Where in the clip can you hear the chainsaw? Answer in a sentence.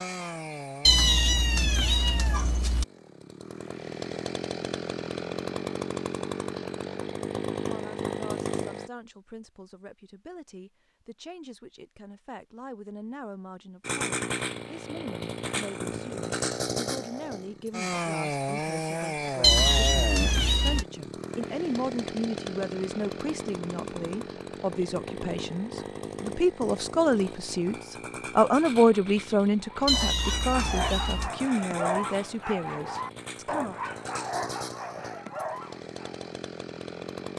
You can hear the chainsaw from 0.0 to 8.9 s and from 13.8 to 37.3 s.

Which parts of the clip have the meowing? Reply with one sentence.
The meowing can be heard from 0.8 to 2.9 s, from 19.4 to 20.9 s and from 29.9 to 31.3 s.